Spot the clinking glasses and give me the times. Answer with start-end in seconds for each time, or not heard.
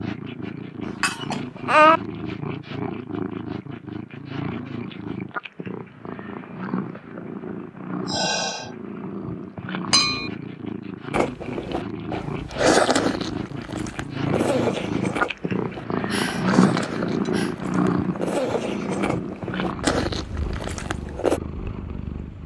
0.8-2.0, 9.9-10.3, 16.6-17.3.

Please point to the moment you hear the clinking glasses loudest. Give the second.
2 s.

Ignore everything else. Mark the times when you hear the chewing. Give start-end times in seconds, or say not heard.
11.1-21.4.